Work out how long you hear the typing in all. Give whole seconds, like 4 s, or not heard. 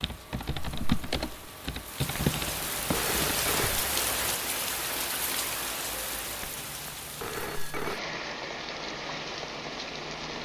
4 s.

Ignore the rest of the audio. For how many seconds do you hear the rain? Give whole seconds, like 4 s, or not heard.
10 s.